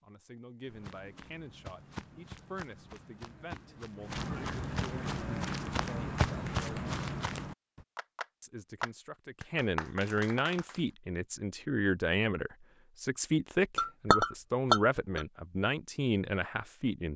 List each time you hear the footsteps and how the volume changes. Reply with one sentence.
The footsteps can be heard from 0.7 to 7.8 s, getting louder.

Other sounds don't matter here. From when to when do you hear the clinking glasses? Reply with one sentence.
The clinking glasses can be heard from 13.8 to 15.2 s.